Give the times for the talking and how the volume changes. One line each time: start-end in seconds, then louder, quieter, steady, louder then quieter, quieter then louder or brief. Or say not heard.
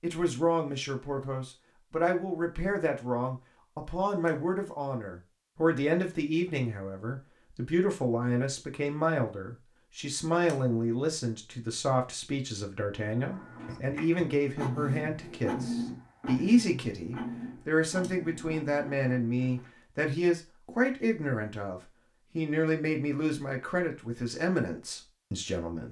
0.0-25.8 steady.